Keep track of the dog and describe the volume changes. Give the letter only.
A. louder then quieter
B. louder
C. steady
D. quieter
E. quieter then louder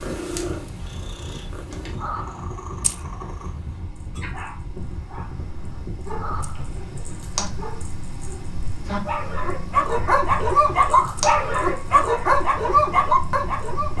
B.